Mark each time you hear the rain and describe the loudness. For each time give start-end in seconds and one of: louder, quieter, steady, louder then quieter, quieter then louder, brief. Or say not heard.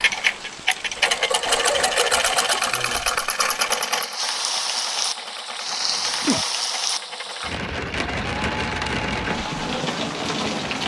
0.0-10.8 louder.